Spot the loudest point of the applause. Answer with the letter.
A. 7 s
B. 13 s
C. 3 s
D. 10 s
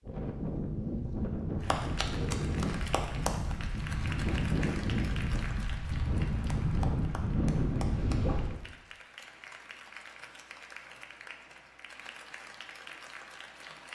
C.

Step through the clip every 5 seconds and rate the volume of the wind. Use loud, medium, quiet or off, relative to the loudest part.
loud, loud, off.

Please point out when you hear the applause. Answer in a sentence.
You can hear the applause from 1.6 to 13.9 s.